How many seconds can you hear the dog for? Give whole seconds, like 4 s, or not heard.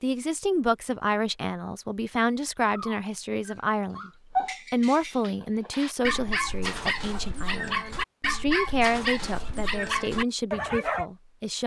8 s.